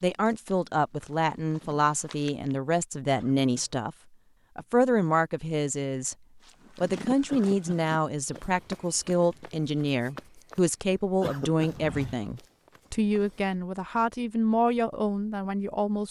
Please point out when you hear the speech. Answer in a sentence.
The speech can be heard from 0.0 to 4.0 s, from 4.5 to 6.2 s and from 6.8 to 16.0 s.